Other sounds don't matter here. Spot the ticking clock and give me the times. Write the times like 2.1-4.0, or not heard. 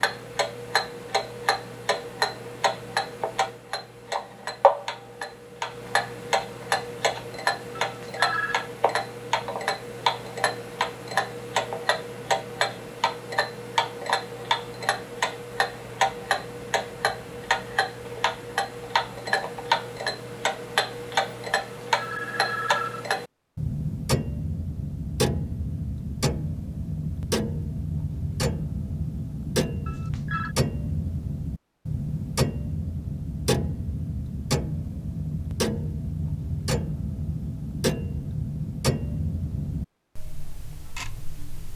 0.0-41.7.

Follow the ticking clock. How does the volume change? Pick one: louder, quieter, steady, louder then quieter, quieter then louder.
steady.